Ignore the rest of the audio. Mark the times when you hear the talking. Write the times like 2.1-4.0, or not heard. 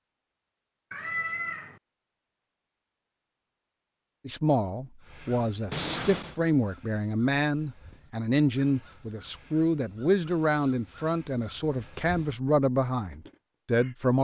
4.2-14.1.